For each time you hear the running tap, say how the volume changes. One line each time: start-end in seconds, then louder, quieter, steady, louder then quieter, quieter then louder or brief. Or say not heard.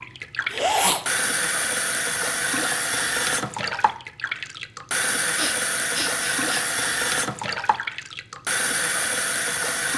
0.0-9.9 steady.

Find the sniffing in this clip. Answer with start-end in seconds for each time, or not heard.
0.5-1.1, 5.3-6.7.